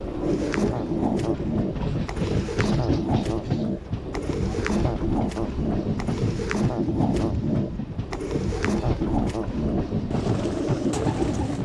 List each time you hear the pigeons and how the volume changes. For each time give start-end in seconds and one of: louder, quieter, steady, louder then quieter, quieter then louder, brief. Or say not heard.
0.2-11.6 steady.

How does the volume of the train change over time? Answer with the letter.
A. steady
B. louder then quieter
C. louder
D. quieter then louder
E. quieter
A.